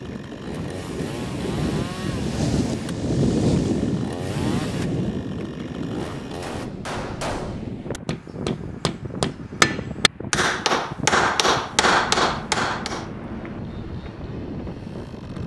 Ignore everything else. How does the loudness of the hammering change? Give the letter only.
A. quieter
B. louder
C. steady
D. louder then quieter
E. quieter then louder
B.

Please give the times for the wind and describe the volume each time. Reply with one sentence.
You can hear the wind from 0.0 to 15.4 s, getting quieter.